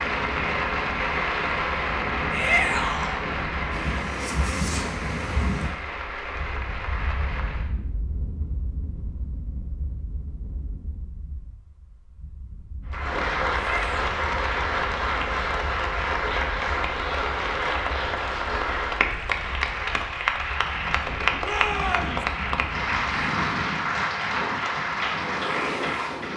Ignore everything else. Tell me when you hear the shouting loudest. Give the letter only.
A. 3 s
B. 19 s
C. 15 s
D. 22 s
A.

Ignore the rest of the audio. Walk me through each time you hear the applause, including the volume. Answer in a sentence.
The applause can be heard from 0.0 to 7.7 s, getting quieter; and from 12.9 to 26.3 s, at a steady volume.